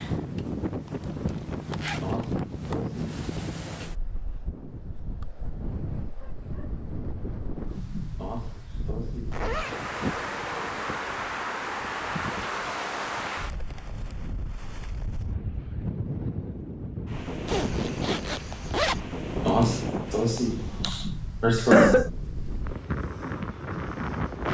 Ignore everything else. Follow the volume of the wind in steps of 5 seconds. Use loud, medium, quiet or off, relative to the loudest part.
loud, medium, loud, loud, loud.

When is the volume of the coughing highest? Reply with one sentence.
The volume of the coughing peaks at 22 seconds.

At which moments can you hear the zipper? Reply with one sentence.
You can hear the zipper from 1.2 to 2.4 s, from 9.3 to 9.9 s and from 17.4 to 19.0 s.